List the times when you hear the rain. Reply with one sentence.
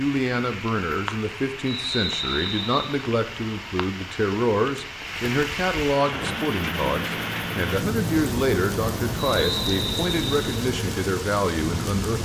The rain can be heard from 0.0 to 12.2 s.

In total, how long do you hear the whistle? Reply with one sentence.
You can hear the whistle for 3 seconds altogether.